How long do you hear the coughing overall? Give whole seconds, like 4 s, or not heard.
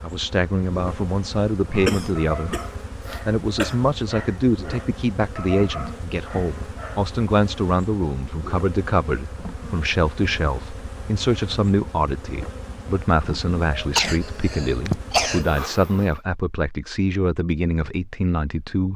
4 s.